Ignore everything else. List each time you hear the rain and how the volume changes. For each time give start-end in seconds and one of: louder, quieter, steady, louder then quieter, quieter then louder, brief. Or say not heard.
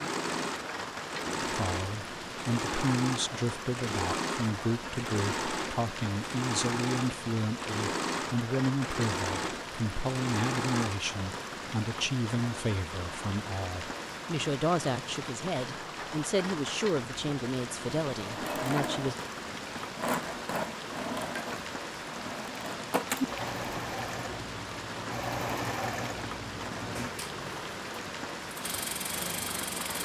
0.0-30.0 steady.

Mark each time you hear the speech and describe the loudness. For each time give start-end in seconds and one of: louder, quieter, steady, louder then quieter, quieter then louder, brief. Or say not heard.
1.5-19.1 steady.